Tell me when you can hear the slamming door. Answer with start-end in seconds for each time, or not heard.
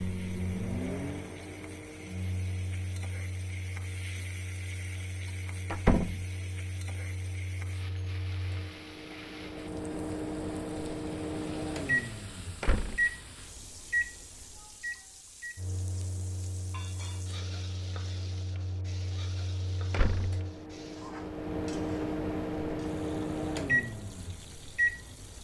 5.7-6.2, 12.6-13.1, 19.9-20.4.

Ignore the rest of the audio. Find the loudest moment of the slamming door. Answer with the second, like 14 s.
6 s.